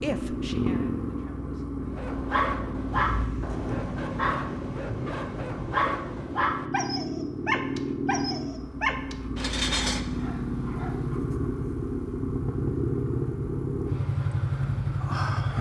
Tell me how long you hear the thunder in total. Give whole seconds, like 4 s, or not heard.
3 s.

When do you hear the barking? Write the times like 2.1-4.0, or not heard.
1.9-11.2.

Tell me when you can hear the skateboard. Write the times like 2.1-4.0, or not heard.
not heard.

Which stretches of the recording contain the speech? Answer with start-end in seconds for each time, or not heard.
0.0-1.8.